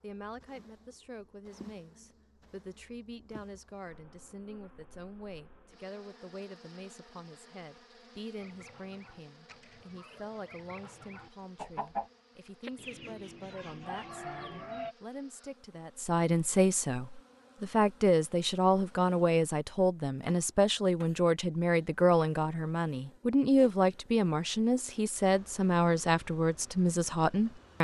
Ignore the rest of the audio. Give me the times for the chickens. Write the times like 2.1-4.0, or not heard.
8.3-14.9.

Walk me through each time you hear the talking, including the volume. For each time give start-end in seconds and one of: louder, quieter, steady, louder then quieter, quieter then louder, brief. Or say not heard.
0.0-27.7 louder.